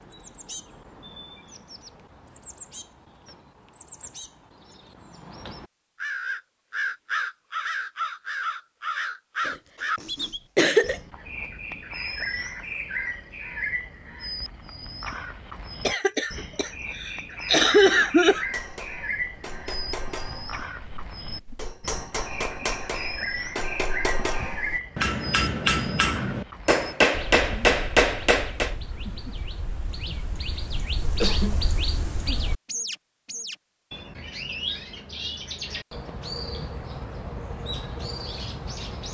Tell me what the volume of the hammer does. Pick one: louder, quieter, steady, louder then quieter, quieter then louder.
louder.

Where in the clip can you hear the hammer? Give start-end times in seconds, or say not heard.
18.3-28.8.